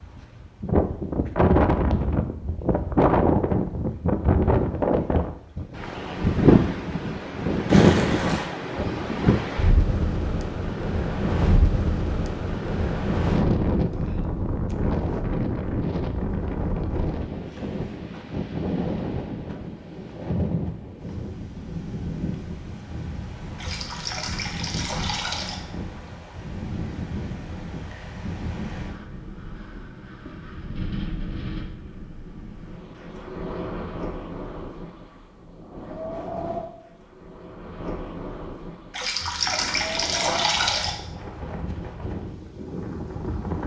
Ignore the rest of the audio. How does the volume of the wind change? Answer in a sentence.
The volume of the wind goes down.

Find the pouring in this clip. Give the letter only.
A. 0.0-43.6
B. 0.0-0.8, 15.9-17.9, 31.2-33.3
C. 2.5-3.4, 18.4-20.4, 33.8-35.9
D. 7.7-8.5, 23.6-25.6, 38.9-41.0
D.